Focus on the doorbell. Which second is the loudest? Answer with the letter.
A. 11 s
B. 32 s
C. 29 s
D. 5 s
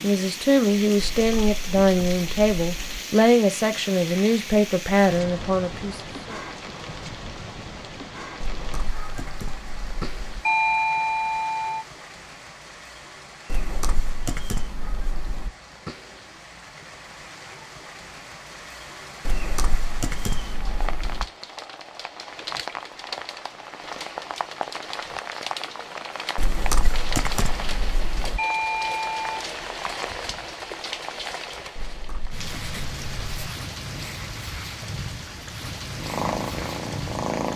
A.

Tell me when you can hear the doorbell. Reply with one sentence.
The doorbell can be heard from 10.4 to 11.8 s and from 28.4 to 29.4 s.